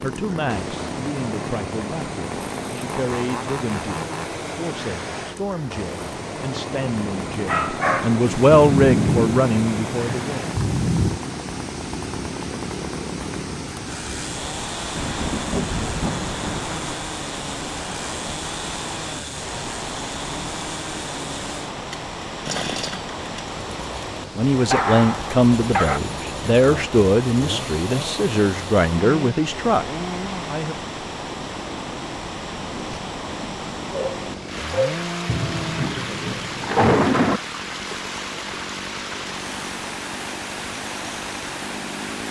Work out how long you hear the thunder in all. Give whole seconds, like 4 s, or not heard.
7 s.